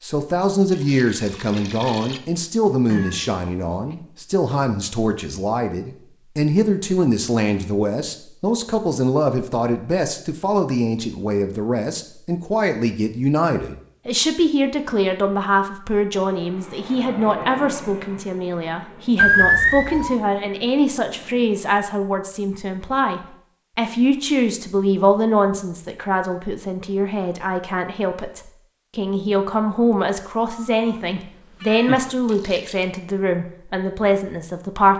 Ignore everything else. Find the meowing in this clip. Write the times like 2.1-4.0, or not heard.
2.9-4.0, 19.1-20.1, 30.5-32.1.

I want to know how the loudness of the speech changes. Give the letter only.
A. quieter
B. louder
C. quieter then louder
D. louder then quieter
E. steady
E.